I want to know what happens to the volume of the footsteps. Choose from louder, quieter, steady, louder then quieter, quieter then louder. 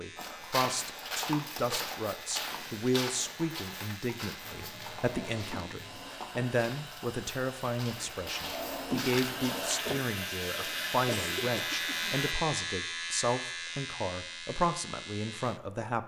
quieter then louder.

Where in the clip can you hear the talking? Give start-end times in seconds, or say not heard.
0.0-16.0.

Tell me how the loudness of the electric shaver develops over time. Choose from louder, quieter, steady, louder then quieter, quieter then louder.
louder.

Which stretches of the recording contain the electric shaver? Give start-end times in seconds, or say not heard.
0.0-15.8.